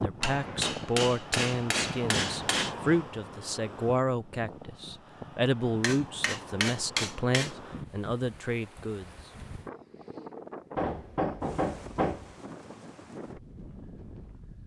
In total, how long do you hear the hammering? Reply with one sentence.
The hammering can be heard for 6 seconds in total.